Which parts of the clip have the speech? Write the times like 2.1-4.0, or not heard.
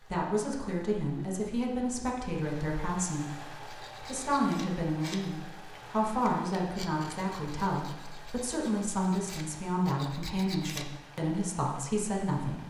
0.0-12.6.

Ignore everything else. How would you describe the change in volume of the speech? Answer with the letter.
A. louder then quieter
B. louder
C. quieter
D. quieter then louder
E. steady
E.